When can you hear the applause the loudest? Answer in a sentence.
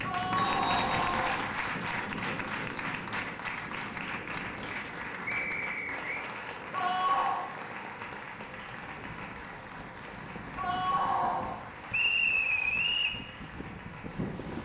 The loudest moment of the applause is at 1 second.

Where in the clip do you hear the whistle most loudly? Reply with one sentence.
The volume of the whistle peaks at 12 seconds.